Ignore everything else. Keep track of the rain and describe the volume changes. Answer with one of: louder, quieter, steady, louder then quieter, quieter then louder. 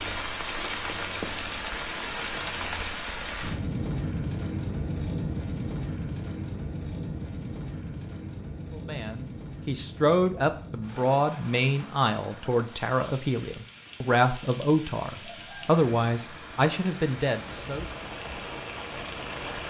quieter then louder.